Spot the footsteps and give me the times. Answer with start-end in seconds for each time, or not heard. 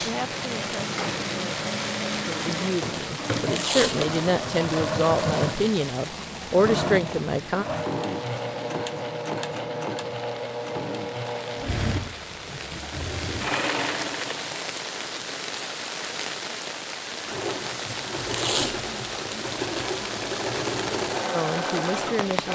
not heard.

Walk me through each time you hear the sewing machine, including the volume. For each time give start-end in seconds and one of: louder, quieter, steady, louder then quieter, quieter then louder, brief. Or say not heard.
0.0-14.6 steady
17.1-22.5 louder.